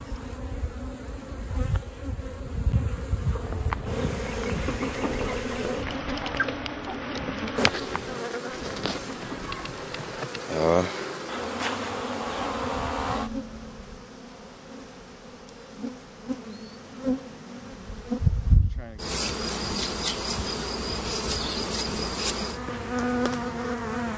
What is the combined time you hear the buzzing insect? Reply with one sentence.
The buzzing insect can be heard for 24 seconds in total.